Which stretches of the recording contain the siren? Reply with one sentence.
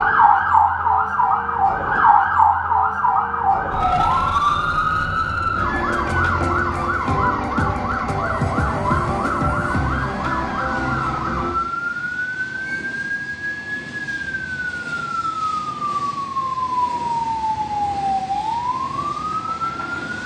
You can hear the siren from 0.0 to 19.9 s.